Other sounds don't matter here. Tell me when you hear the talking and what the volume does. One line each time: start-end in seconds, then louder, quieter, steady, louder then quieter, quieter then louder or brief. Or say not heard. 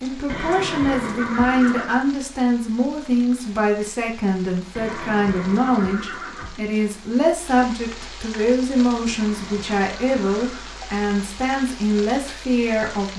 0.0-13.1 steady.